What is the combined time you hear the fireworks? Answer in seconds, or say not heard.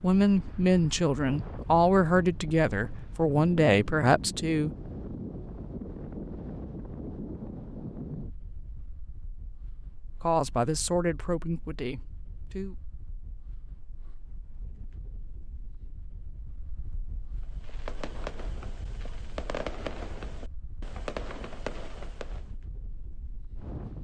5 s.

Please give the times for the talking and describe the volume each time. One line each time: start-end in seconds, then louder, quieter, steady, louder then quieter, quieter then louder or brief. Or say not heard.
0.0-4.7 steady
10.2-12.9 brief.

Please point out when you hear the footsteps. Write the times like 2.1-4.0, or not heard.
not heard.